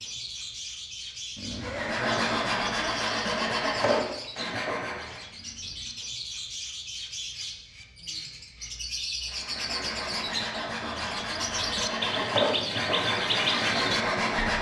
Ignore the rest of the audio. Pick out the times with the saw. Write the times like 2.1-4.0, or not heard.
1.6-5.2, 9.2-14.5.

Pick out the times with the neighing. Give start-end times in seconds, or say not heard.
1.4-2.5.